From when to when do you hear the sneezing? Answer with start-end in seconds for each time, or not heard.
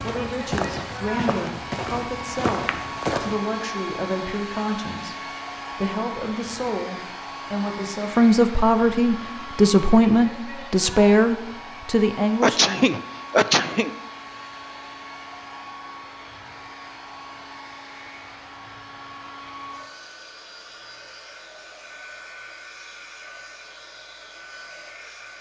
12.4-13.9.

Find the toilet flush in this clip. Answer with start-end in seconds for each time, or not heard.
not heard.